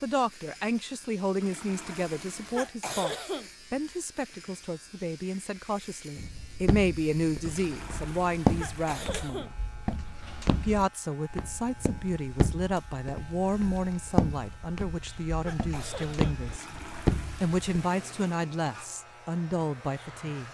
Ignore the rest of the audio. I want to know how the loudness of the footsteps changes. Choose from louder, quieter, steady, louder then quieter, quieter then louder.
quieter then louder.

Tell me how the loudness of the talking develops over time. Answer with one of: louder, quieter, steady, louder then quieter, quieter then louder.
steady.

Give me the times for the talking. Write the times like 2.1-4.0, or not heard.
0.0-9.6, 10.6-16.6, 17.4-20.4.